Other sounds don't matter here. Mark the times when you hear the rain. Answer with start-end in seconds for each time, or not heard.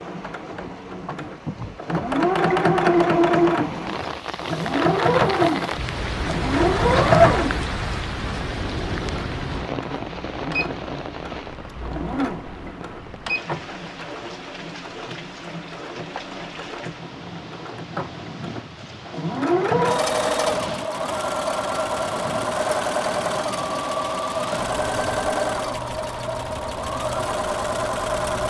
0.0-28.4.